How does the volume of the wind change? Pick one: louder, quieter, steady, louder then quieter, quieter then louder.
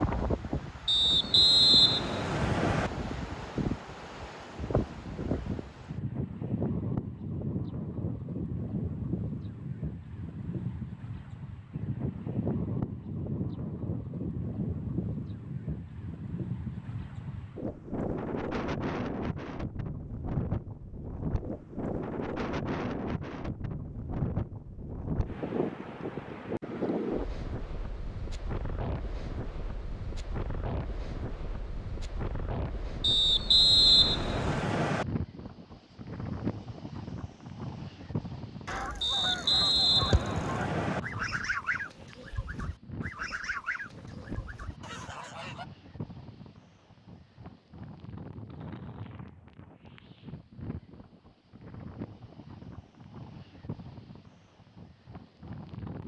quieter.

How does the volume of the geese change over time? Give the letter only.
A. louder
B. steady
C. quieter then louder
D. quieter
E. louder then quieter
D.